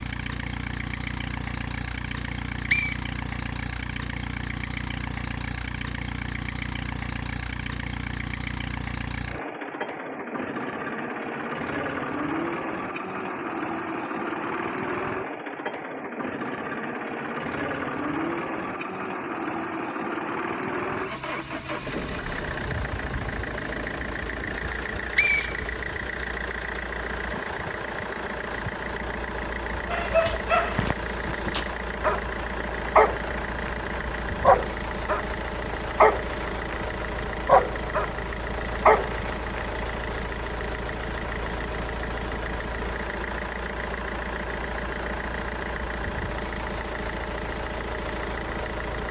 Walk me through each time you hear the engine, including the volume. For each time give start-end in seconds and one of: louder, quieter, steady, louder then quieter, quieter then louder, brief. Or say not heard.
0.0-49.0 steady.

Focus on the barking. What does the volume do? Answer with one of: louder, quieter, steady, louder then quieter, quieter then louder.
louder.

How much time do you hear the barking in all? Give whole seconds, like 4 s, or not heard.
10 s.